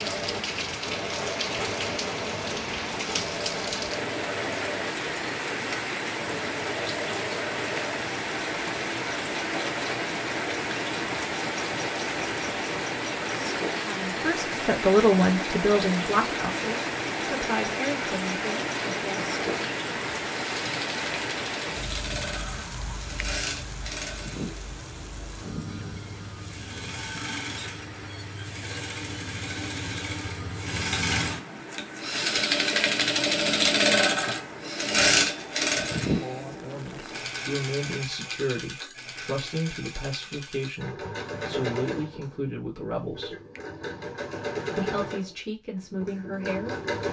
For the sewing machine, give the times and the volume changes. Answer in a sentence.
The sewing machine can be heard from 0.0 to 47.0 s, getting louder then quieter.